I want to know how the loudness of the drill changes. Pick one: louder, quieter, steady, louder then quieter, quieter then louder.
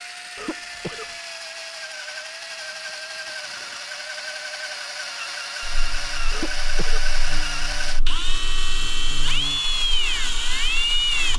louder.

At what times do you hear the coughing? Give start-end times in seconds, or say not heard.
0.3-1.1, 6.3-7.2.